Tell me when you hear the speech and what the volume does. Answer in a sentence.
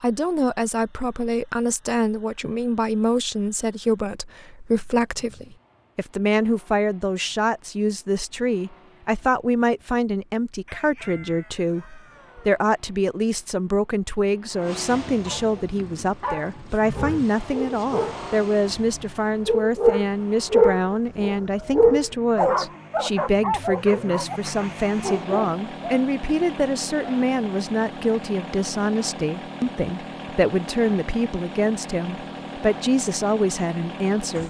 The speech can be heard from 0.0 to 34.4 s, at a steady volume.